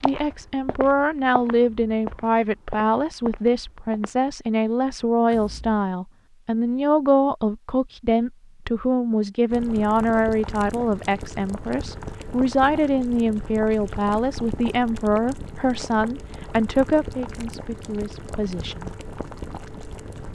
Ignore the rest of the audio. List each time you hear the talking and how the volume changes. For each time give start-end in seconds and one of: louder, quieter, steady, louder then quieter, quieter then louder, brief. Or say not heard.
0.0-18.9 steady.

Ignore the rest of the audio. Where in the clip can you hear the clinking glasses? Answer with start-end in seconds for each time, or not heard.
not heard.